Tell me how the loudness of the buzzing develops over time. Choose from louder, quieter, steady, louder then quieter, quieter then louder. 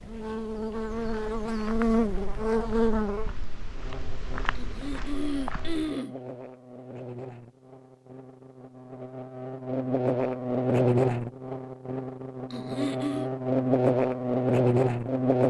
quieter then louder.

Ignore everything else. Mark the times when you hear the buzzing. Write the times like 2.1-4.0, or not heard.
0.0-15.4.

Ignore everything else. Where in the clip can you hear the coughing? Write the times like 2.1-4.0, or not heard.
4.5-6.2, 12.5-13.3.